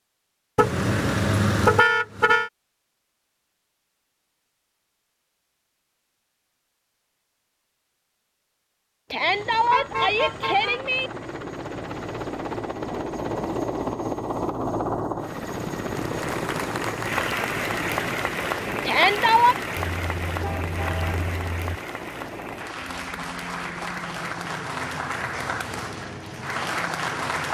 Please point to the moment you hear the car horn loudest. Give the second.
2 s.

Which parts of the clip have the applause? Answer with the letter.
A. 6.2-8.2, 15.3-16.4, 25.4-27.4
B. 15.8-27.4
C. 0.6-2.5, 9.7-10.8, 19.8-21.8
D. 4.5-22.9
B.